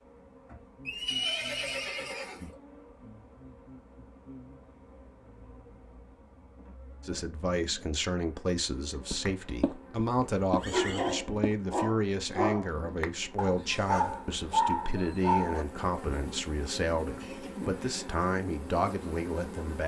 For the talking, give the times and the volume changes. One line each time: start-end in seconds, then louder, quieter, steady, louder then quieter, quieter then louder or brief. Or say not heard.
7.0-19.8 steady.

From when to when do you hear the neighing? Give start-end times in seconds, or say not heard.
0.8-2.5, 10.4-11.2, 17.2-18.1.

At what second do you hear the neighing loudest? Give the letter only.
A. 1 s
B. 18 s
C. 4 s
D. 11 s
A.